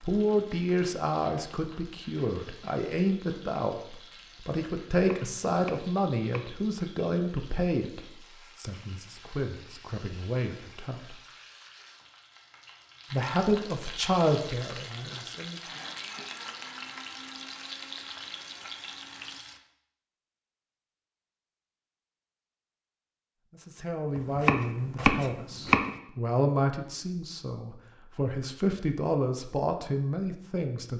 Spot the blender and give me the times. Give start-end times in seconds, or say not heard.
14.9-19.4.